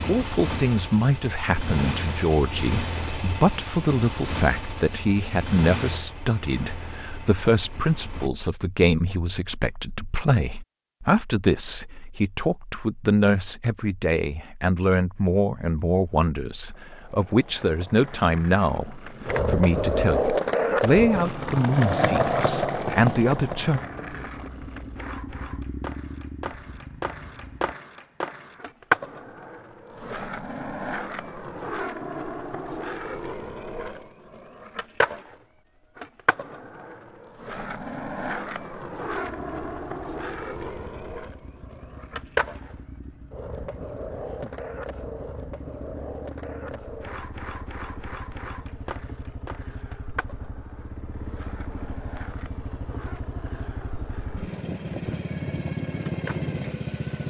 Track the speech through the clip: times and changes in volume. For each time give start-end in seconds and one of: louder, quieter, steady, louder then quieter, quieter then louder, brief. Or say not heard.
0.0-23.8 steady.